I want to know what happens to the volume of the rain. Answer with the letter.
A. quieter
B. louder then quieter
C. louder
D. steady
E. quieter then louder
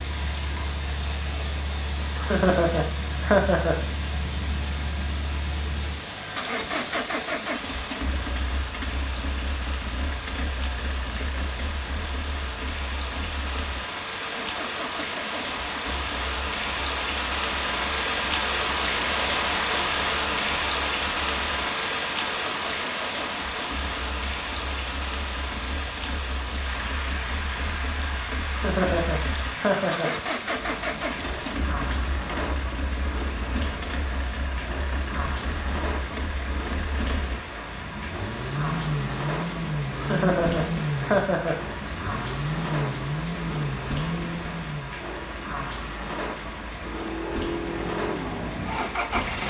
B.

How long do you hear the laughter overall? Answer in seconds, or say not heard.
5 s.